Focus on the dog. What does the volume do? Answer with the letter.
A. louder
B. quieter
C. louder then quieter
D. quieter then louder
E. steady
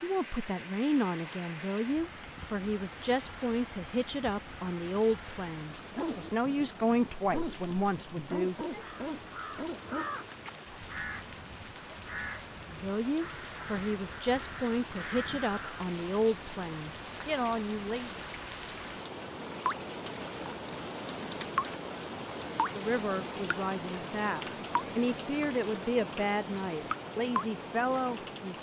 D.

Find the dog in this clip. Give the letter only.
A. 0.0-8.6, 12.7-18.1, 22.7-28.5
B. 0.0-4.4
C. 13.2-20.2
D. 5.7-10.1
D.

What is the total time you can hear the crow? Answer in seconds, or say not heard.
7 s.